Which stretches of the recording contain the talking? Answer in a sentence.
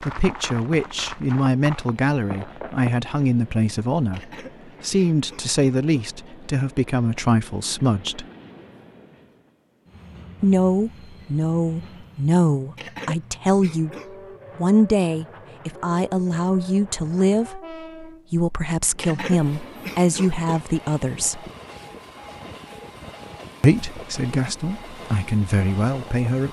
You can hear the talking from 0.0 to 8.2 s, from 10.4 to 13.9 s, from 14.6 to 21.4 s and from 23.6 to 26.4 s.